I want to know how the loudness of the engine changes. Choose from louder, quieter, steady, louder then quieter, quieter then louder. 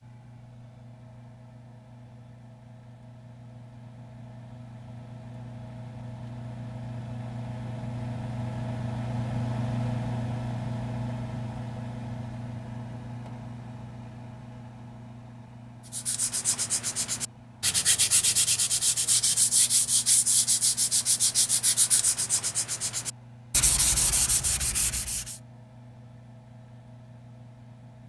louder then quieter.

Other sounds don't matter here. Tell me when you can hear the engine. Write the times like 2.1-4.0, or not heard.
0.0-28.0.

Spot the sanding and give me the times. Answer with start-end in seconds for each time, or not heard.
15.9-25.4.